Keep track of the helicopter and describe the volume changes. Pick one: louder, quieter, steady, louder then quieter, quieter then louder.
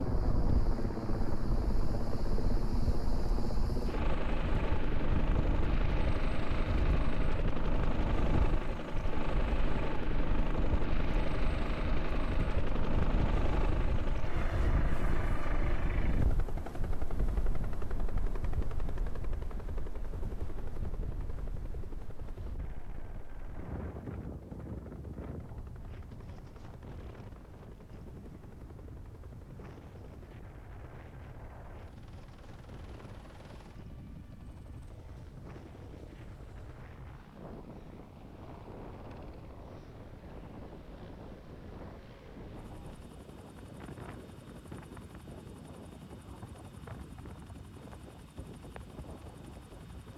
quieter.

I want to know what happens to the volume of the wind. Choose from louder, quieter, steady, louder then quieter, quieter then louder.
quieter.